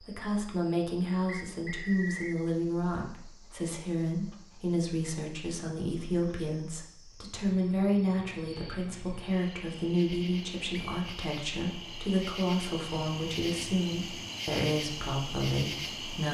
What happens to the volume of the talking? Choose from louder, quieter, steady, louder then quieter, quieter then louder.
steady.